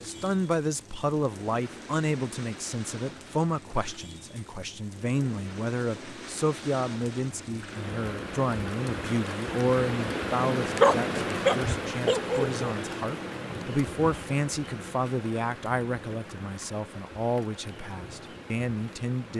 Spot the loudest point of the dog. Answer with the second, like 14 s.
11 s.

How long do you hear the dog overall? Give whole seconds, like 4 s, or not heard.
2 s.